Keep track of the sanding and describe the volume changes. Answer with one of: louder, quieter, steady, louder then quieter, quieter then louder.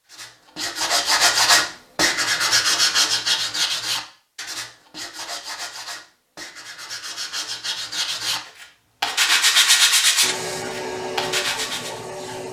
quieter then louder.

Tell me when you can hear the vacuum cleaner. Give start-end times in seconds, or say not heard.
10.2-12.4.